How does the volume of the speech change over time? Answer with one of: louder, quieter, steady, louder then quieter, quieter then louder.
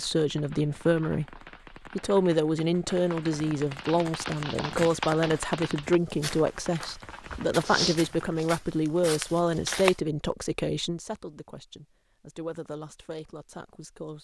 quieter.